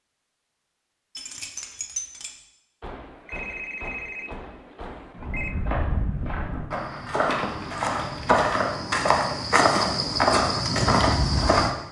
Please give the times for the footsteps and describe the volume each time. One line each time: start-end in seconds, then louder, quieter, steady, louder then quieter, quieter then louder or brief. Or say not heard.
5.2-11.8 louder.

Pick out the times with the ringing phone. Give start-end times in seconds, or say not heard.
2.8-5.5.